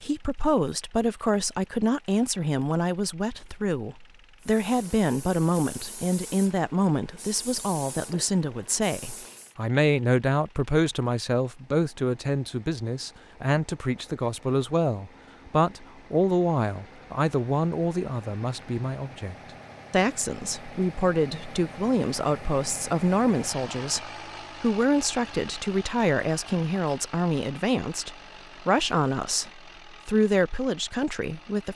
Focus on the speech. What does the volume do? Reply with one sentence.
The loudness of the speech stays about the same.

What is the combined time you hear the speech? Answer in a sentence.
You can hear the speech for 32 seconds altogether.